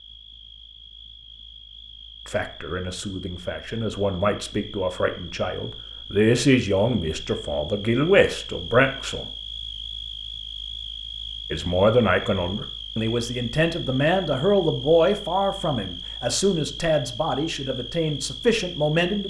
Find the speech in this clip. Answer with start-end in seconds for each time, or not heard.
2.2-9.2, 11.5-19.2.